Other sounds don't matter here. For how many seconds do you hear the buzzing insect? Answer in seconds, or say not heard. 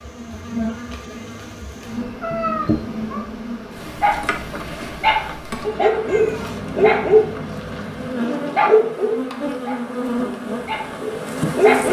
12 s.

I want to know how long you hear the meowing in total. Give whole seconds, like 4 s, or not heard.
3 s.